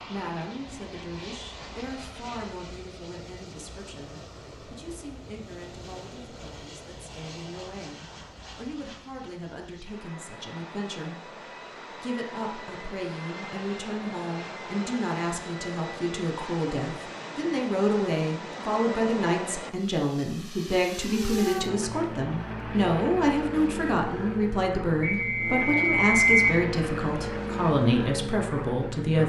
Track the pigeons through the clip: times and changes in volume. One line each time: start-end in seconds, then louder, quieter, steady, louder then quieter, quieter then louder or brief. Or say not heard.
not heard.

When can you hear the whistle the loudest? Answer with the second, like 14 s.
26 s.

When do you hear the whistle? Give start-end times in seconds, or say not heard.
25.0-26.6.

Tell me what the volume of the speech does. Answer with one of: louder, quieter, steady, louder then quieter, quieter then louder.
louder.